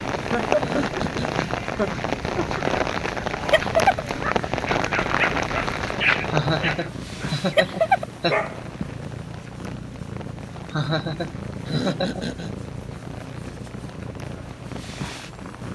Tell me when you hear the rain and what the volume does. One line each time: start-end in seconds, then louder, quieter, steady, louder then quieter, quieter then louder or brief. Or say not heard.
0.0-15.6 quieter.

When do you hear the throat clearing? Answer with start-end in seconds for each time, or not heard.
0.6-1.6, 11.7-12.5.